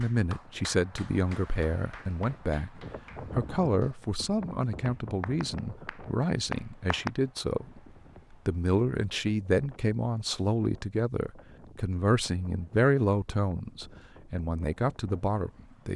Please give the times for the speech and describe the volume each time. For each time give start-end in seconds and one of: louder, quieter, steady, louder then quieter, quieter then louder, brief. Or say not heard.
0.0-15.9 steady.